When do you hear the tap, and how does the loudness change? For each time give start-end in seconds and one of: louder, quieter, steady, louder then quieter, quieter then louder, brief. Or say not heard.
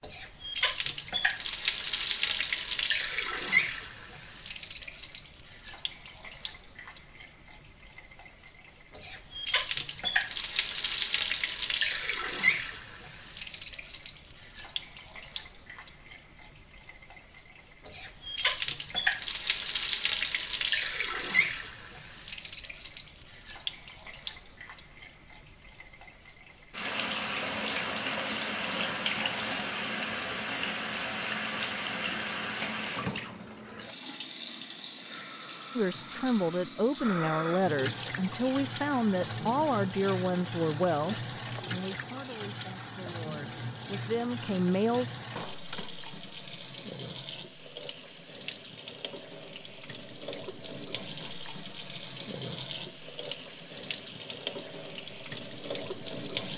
0.0-56.5 quieter.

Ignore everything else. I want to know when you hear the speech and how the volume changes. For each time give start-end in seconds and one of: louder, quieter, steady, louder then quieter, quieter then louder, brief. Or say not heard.
35.8-45.1 quieter then louder.